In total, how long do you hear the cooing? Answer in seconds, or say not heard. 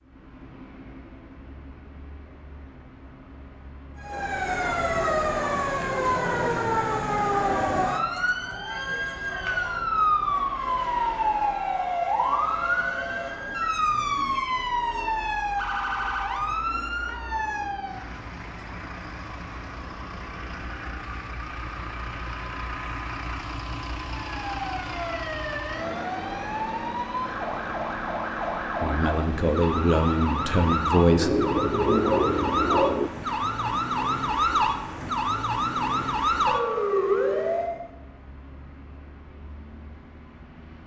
2 s.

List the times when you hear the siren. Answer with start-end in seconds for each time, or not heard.
4.0-18.1, 24.1-37.9.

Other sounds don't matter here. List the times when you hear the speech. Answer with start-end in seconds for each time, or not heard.
28.8-31.4.